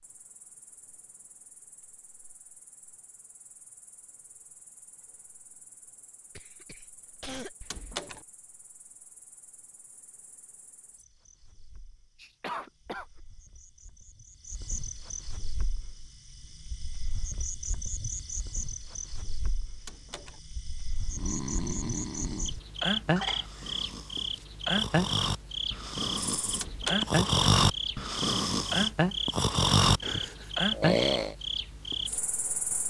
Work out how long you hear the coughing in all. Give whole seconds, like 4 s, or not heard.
3 s.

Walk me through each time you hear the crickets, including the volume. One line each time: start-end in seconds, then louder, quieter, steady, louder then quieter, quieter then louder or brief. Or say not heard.
0.0-32.8 louder.